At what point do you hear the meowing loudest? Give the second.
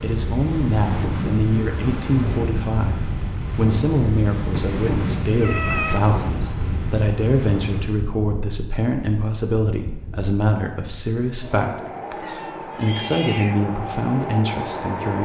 6 s.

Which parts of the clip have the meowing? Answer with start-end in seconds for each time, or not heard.
4.5-6.0, 12.2-13.7.